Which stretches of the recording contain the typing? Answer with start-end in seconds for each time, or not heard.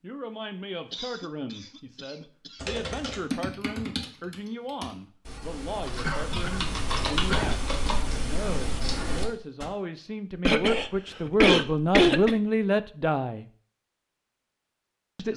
2.6-9.7.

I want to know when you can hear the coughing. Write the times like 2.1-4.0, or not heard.
0.9-3.1, 6.0-7.5, 10.4-12.3.